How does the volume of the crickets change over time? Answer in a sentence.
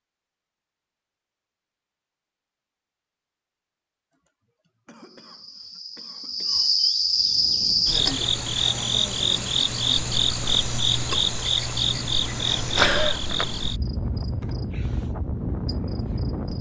The volume of the crickets goes down.